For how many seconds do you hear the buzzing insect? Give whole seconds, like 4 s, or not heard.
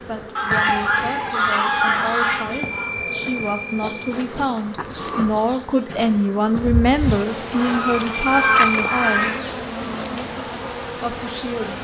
12 s.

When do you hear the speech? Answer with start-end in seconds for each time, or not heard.
0.1-9.2, 11.0-11.7.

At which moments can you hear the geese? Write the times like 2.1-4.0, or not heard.
0.3-2.9, 7.5-9.4.